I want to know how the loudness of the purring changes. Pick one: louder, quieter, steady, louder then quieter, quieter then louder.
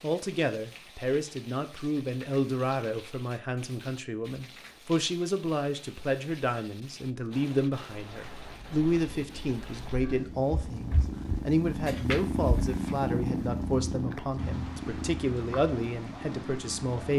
louder then quieter.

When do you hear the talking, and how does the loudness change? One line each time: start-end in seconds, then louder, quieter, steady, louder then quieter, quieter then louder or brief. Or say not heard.
0.0-17.1 steady.